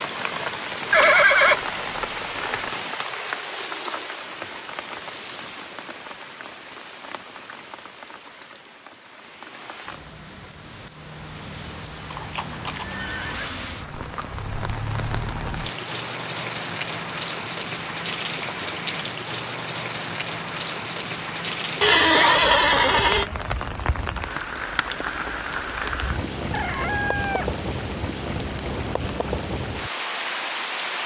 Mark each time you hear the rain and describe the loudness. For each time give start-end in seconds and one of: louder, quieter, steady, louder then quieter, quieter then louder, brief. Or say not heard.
0.0-31.0 quieter then louder.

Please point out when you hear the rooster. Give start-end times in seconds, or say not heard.
26.5-27.6.